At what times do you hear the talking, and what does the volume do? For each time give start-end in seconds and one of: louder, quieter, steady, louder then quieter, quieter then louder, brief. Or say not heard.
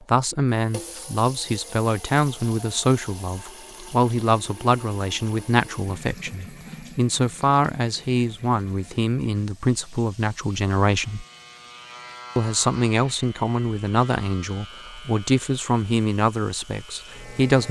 0.1-11.2 steady
12.3-17.6 quieter.